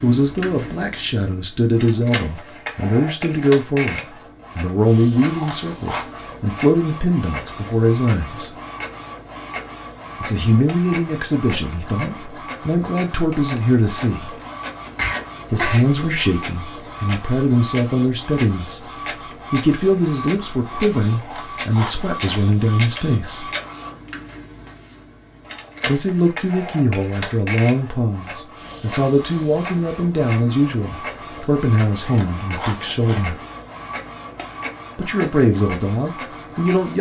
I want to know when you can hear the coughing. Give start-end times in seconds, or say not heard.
14.9-15.8.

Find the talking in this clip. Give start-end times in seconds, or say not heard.
0.0-8.5, 10.2-14.3, 15.5-18.8, 19.5-23.5, 25.9-33.4, 35.0-36.9.